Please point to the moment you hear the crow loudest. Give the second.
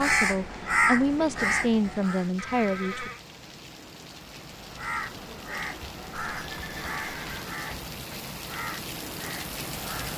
1 s.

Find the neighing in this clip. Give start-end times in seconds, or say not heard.
2.4-3.2, 6.2-7.5.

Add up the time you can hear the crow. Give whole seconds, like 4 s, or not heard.
8 s.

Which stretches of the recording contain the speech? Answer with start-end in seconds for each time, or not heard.
0.0-3.1.